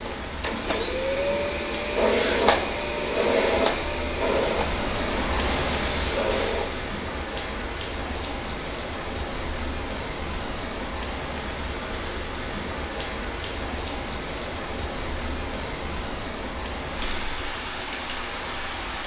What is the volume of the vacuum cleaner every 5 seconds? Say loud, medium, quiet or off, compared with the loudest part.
loud, medium, off, off.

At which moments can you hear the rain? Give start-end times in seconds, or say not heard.
0.0-19.0.